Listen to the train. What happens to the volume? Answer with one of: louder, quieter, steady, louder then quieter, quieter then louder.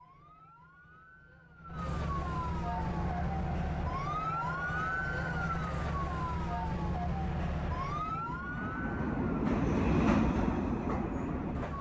louder.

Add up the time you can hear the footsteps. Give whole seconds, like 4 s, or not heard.
not heard.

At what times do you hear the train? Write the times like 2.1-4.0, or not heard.
2.6-11.7.